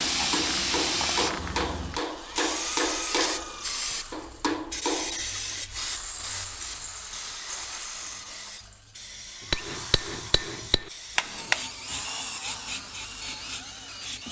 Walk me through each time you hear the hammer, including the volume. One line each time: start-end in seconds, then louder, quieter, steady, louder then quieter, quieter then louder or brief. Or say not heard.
0.0-5.2 steady
9.5-11.7 brief.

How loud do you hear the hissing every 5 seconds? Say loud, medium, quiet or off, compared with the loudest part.
loud, medium, medium.